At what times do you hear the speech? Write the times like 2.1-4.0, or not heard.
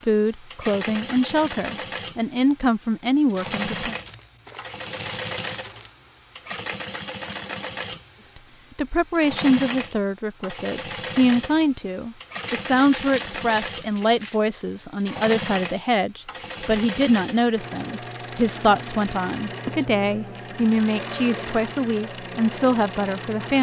0.1-4.0, 8.8-23.5.